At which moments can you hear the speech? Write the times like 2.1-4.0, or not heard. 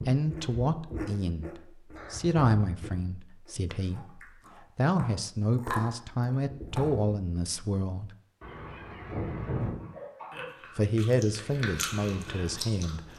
0.1-8.1, 10.8-13.1.